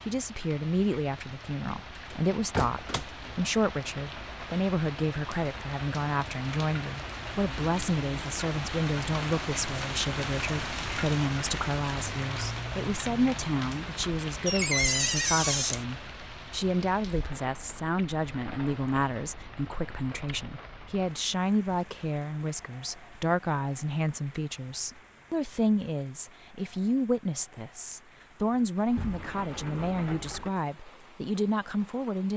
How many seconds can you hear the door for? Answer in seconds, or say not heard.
4 s.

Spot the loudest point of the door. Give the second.
15 s.